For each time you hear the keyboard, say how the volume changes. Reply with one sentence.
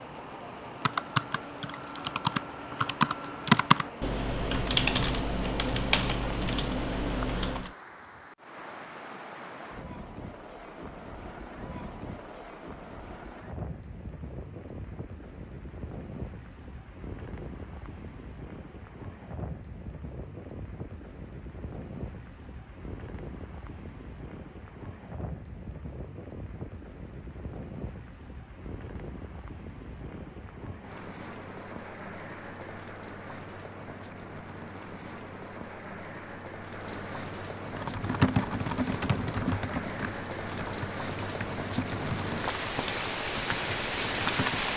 The keyboard can be heard from 0.8 to 7.7 s, getting louder then quieter; and from 37.7 to 44.6 s, getting quieter.